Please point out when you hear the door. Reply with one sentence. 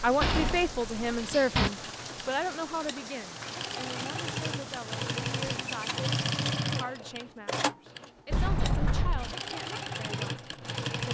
You can hear the door from 0.2 to 1.7 s and from 8.3 to 9.3 s.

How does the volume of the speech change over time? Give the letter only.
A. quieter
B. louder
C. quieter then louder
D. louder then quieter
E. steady
A.